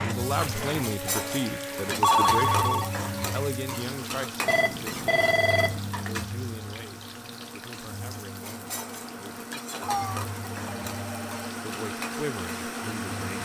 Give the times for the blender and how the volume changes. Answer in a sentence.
You can hear the blender from 0.0 to 13.3 s, getting quieter then louder.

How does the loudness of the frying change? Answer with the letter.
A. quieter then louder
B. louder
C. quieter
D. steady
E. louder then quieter
C.